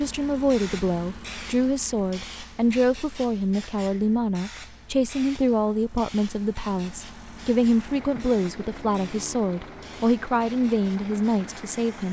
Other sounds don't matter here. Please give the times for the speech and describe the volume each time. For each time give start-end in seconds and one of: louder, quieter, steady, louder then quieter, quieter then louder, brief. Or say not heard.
0.0-12.0 steady.